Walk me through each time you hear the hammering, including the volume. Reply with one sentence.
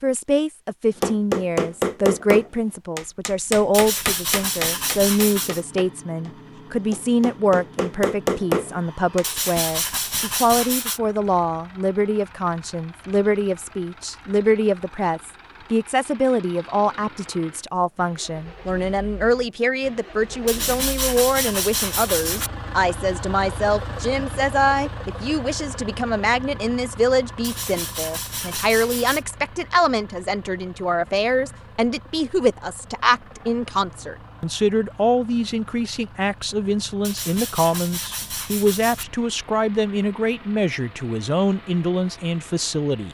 You can hear the hammering from 0.9 to 9.2 s, getting quieter then louder.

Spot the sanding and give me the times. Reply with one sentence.
You can hear the sanding from 3.7 to 5.6 s, from 9.2 to 11.0 s, from 20.4 to 22.5 s, from 27.4 to 29.2 s and from 37.0 to 39.0 s.